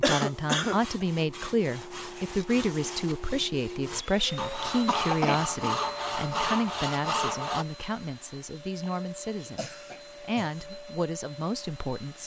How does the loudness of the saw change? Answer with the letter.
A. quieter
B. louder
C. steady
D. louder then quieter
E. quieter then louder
B.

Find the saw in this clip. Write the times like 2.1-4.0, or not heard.
0.7-7.7.